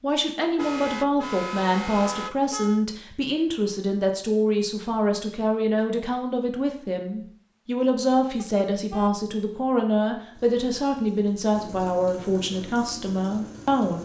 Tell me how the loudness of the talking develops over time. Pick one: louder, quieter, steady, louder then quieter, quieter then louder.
steady.